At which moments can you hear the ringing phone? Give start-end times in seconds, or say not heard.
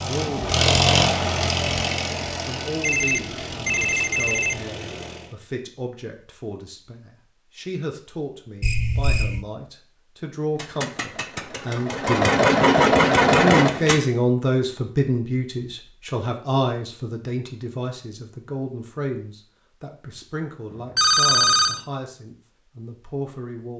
2.8-4.7, 8.6-9.4, 20.7-21.9.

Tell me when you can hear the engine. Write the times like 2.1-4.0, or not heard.
0.0-5.3, 10.6-14.0.